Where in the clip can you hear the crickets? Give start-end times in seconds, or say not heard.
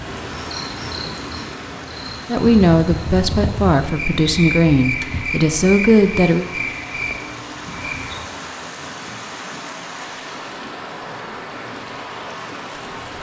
0.0-8.2.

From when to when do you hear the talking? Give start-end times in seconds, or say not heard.
2.3-6.5.